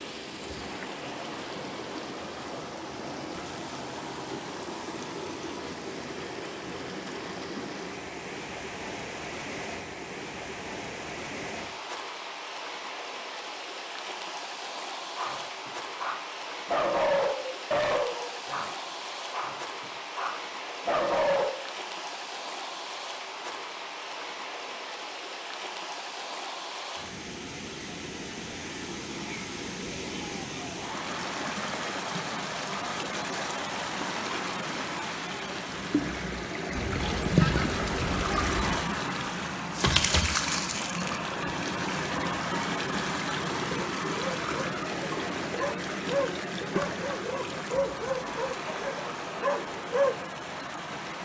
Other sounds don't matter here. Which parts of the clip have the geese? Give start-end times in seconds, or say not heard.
36.7-38.6.